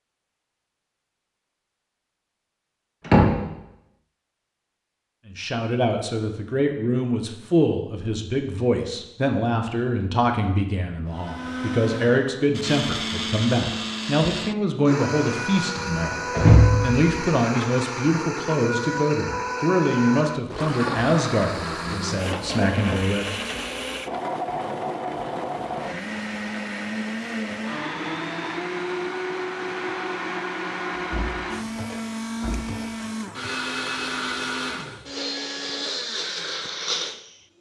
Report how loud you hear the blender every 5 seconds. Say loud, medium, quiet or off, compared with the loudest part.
off, off, loud, loud, loud, loud, loud, loud.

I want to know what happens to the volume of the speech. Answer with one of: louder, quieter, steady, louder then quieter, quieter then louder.
steady.